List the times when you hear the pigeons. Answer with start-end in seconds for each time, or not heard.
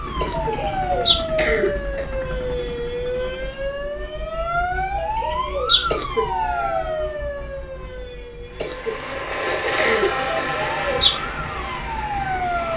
0.3-1.2, 5.0-5.8, 10.4-11.2.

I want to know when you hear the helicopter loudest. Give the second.
10 s.